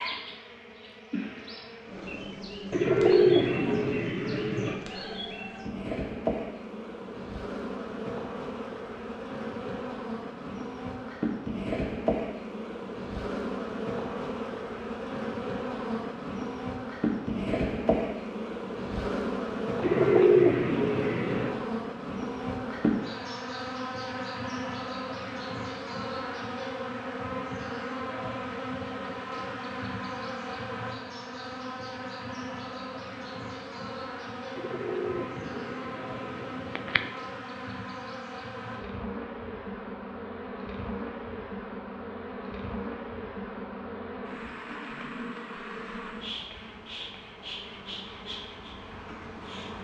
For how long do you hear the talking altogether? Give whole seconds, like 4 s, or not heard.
not heard.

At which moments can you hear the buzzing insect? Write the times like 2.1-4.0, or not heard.
0.0-49.8.